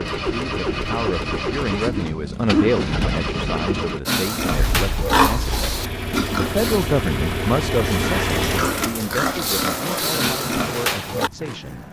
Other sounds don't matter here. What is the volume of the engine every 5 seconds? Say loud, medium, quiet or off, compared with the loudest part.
loud, loud, medium.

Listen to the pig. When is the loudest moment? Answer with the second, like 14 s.
5 s.